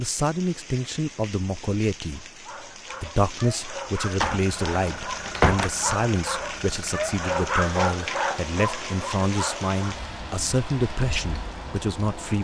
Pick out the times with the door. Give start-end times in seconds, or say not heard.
4.2-5.7.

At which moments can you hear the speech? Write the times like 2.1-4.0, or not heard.
0.0-2.2, 3.0-12.4.